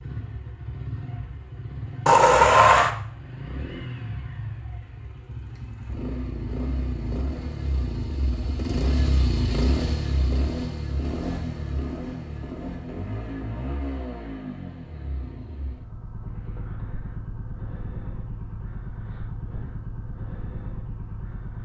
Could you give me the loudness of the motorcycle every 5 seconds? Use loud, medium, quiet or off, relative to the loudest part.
medium, loud, loud, medium, medium.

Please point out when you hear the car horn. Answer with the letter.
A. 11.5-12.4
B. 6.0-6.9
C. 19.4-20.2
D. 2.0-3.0
D.